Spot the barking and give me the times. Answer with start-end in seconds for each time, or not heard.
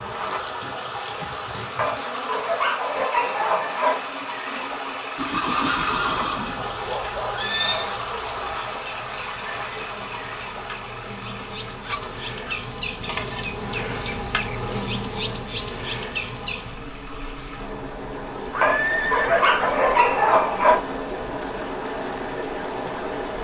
1.8-4.0, 6.5-8.6, 11.8-12.6, 18.6-20.9.